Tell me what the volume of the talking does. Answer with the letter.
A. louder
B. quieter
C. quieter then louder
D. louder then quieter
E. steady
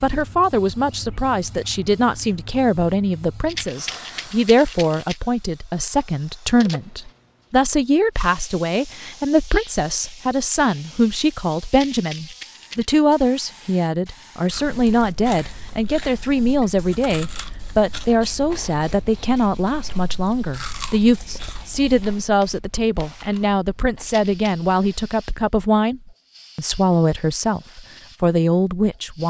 E.